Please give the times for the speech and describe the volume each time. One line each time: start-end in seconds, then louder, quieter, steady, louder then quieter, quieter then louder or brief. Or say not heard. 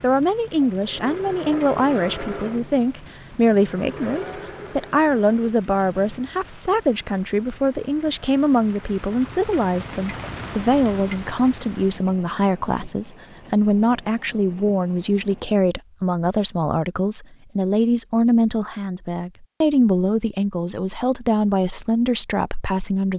0.0-23.1 steady.